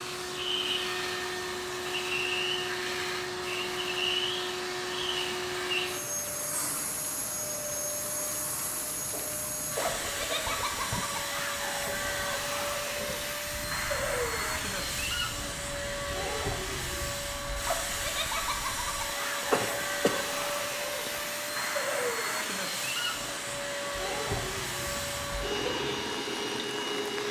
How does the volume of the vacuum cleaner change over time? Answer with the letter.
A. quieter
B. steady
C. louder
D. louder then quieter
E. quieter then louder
B.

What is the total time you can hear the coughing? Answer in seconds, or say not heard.
3 s.